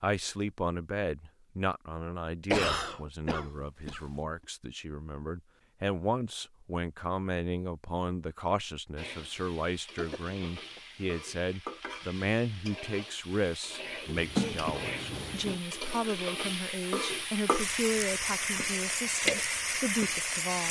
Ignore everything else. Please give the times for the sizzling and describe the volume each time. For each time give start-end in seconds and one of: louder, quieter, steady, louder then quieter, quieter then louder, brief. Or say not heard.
8.9-20.6 louder.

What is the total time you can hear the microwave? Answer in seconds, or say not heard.
not heard.